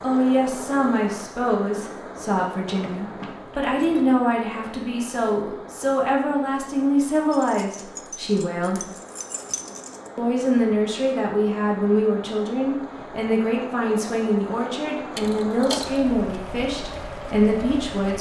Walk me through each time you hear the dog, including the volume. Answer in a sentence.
You can't hear the dog here.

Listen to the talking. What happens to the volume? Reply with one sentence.
The loudness of the talking stays about the same.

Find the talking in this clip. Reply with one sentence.
The talking can be heard from 0.0 to 8.8 s and from 10.2 to 18.1 s.